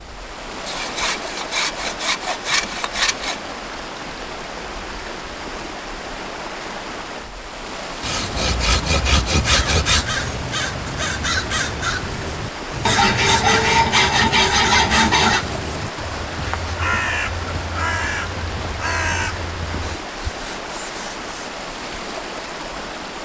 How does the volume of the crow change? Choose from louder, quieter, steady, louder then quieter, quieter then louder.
steady.